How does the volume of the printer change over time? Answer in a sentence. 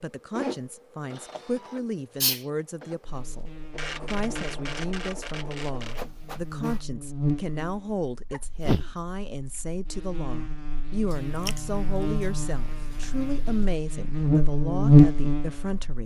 The loudness of the printer goes down, then up.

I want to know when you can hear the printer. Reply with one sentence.
The printer can be heard from 0.0 to 6.8 s.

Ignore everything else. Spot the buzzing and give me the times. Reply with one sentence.
You can hear the buzzing from 3.0 to 16.0 s.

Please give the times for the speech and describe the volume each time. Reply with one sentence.
The speech can be heard from 0.0 to 16.0 s, at a steady volume.